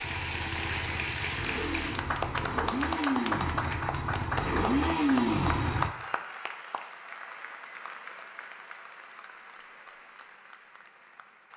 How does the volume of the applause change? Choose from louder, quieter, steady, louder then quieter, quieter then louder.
quieter.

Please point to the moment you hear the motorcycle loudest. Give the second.
5 s.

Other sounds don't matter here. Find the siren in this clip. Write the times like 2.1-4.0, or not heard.
not heard.